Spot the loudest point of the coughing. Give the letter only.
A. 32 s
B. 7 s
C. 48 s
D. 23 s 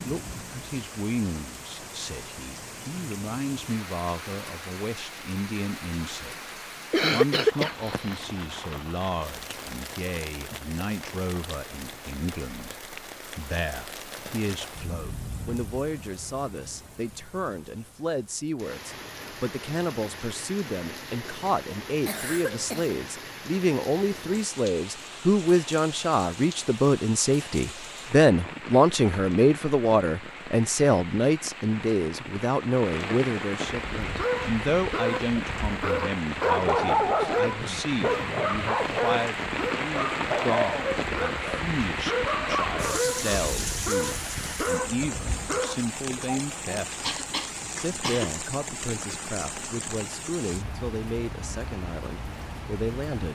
B.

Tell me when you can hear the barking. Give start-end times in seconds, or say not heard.
33.6-45.8.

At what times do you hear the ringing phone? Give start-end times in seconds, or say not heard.
not heard.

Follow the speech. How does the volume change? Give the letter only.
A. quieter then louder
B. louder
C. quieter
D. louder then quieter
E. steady
D.